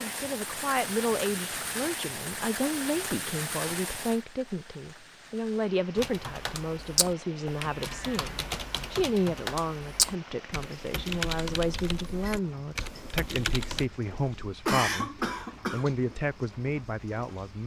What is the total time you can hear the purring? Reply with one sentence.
You can't hear the purring here.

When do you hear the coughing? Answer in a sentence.
You can hear the coughing from 14.7 to 15.9 s.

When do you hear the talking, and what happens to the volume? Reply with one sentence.
You can hear the talking from 0.0 to 17.6 s, at a steady volume.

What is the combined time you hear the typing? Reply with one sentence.
The typing can be heard for 8 seconds in total.